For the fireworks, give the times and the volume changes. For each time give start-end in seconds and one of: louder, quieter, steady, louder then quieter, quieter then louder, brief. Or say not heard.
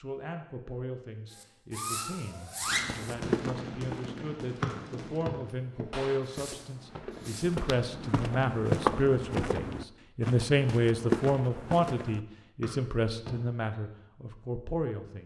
1.2-7.6 quieter.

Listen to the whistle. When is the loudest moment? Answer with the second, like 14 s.
5 s.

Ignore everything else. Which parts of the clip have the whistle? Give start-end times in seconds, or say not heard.
4.6-5.3, 12.6-13.3.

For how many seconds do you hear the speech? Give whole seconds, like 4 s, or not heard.
15 s.